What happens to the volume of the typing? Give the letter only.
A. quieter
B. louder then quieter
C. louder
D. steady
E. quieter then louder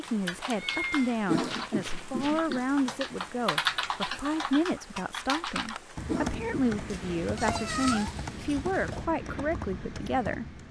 B.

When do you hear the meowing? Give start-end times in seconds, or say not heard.
0.5-2.5, 6.9-9.1.